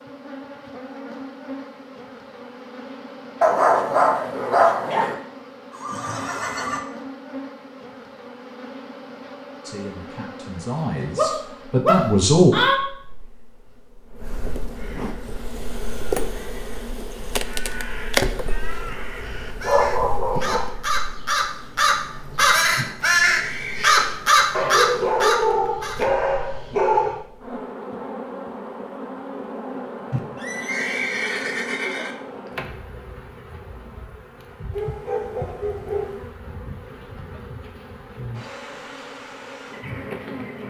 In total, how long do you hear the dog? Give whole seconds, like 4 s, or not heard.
9 s.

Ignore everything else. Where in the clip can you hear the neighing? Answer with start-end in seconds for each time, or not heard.
5.7-6.8, 22.8-24.0, 30.1-32.1.